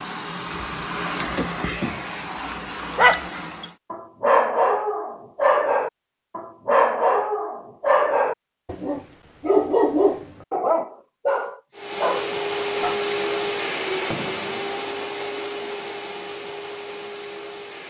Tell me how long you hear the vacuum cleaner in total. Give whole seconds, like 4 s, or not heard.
10 s.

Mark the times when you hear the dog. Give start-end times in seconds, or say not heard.
2.4-12.9.